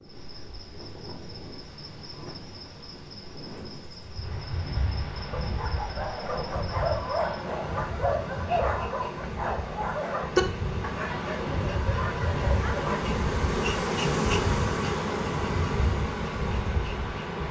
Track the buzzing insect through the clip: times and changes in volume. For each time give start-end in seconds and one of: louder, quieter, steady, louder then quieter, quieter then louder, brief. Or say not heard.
0.0-17.4 louder.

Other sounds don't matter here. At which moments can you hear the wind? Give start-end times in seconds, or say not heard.
0.0-17.4.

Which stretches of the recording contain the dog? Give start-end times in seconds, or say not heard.
5.3-13.0.